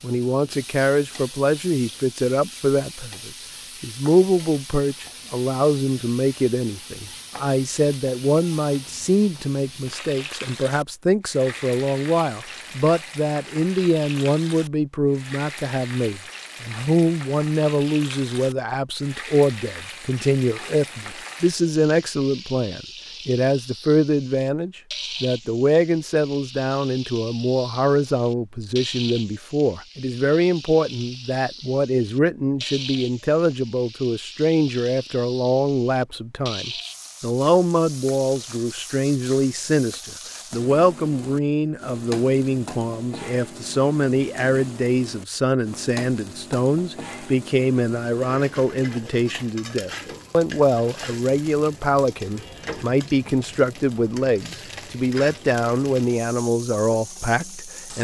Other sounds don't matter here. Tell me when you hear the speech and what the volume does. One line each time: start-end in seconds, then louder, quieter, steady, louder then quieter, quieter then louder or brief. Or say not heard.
0.0-57.9 steady.